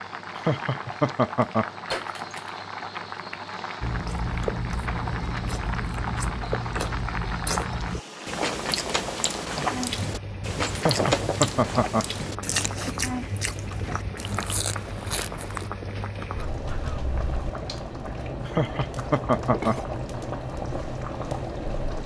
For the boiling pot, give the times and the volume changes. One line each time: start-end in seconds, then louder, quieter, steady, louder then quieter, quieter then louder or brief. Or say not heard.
0.0-22.0 steady.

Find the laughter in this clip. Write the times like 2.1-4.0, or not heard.
0.3-1.6, 10.8-12.1, 18.4-19.8.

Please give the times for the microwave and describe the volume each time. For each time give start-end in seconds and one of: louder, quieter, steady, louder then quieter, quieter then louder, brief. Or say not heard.
not heard.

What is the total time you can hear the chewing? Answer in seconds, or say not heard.
12 s.